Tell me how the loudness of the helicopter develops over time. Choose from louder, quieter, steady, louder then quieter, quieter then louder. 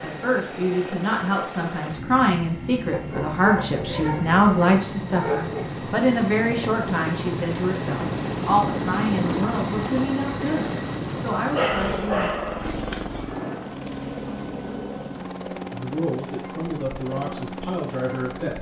louder then quieter.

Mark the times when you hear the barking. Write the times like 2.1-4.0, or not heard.
2.9-5.8, 11.5-13.1.